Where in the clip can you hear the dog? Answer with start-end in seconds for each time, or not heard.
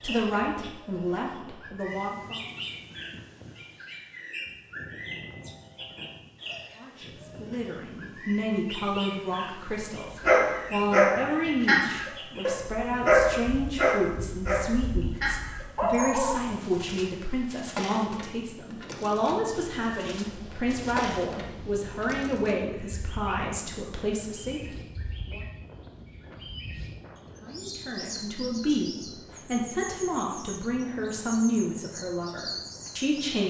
10.2-16.4.